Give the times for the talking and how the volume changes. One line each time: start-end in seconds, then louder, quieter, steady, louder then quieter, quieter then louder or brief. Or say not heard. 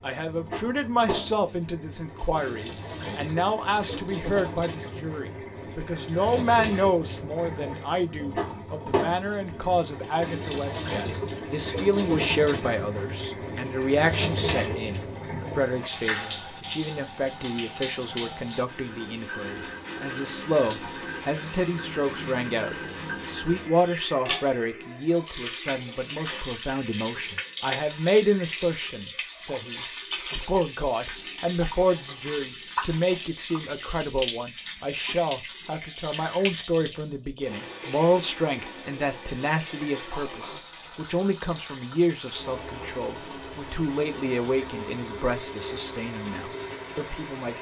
0.0-47.5 steady.